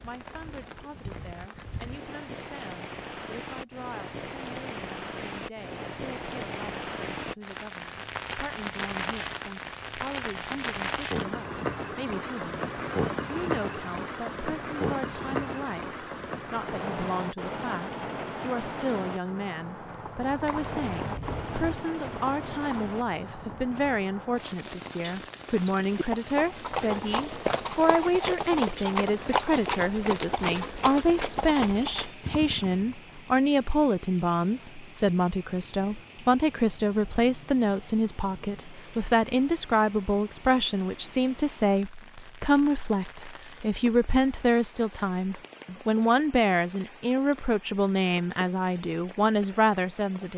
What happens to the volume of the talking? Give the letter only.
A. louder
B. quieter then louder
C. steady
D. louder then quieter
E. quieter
A.